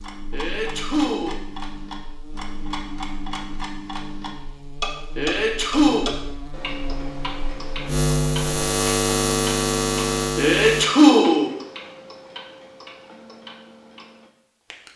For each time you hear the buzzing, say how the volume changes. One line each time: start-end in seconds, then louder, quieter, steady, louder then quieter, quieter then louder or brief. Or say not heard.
0.0-10.8 louder.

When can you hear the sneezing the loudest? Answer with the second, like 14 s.
11 s.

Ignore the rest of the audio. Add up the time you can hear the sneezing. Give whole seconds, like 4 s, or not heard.
3 s.